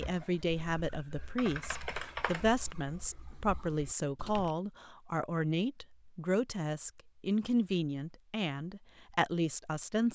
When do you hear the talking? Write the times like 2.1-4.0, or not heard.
0.0-10.0.